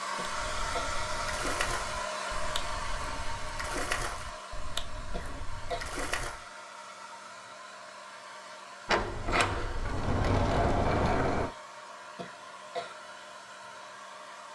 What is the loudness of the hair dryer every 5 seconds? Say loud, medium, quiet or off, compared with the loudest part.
loud, medium, medium.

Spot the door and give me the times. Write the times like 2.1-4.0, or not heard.
8.8-11.5.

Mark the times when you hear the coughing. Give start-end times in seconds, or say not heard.
0.1-0.9, 5.1-5.9, 12.2-12.9.